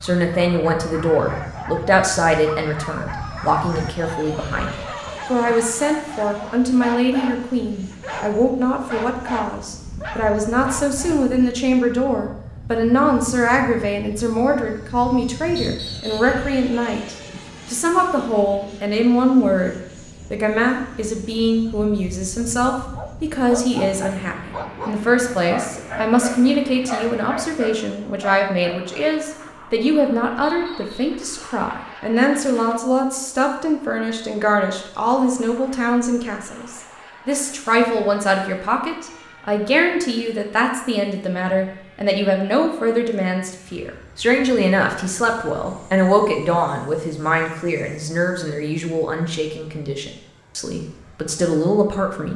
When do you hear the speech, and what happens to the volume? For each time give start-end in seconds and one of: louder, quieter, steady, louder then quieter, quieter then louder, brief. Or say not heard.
0.0-52.3 steady.